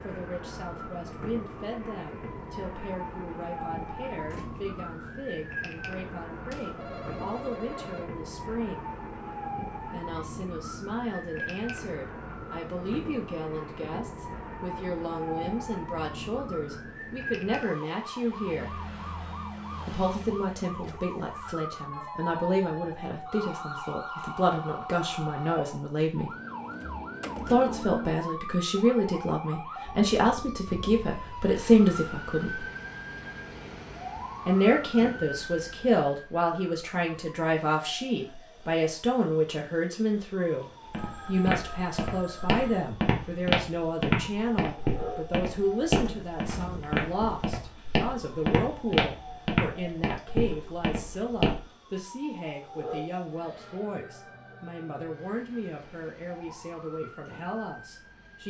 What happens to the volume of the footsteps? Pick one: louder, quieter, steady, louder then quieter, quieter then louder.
steady.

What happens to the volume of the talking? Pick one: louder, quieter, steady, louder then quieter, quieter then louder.
louder then quieter.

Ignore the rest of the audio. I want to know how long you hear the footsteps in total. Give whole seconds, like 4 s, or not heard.
11 s.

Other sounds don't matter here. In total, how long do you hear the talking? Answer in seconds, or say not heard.
53 s.